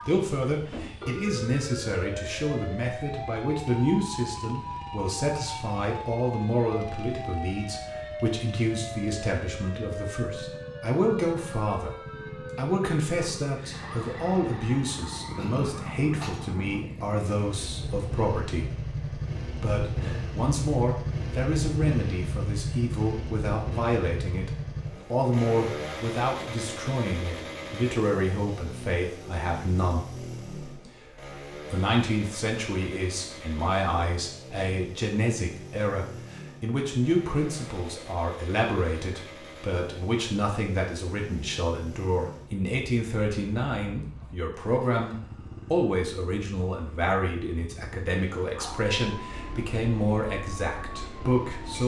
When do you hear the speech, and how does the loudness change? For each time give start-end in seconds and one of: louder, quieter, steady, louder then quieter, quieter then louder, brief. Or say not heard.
0.1-51.8 steady.